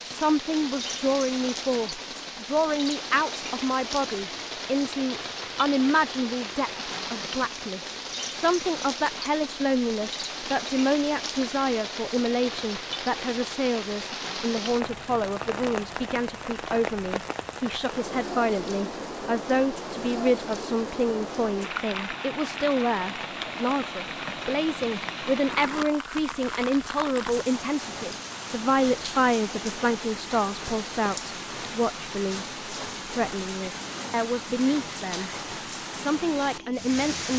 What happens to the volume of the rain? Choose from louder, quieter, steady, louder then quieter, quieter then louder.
steady.